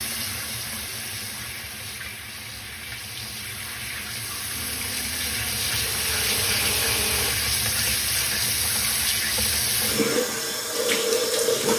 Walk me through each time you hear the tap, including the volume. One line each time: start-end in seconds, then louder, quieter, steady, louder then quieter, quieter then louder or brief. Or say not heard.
0.0-11.7 louder.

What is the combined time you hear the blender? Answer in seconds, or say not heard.
3 s.